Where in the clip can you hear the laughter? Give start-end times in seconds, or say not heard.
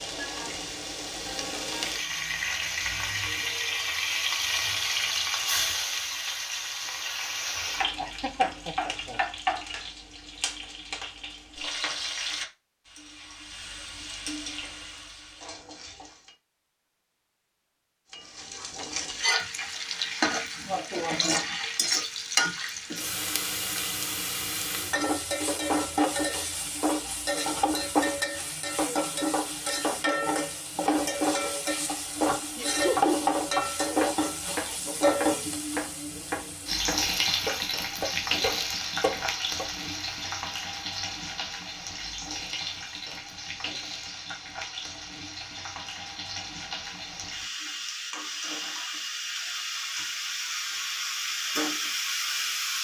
8.0-9.2, 32.5-33.2.